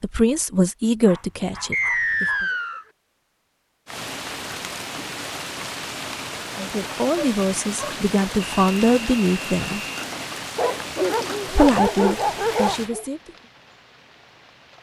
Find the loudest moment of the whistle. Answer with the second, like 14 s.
2 s.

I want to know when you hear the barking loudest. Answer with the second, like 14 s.
12 s.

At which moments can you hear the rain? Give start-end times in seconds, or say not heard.
3.9-14.7.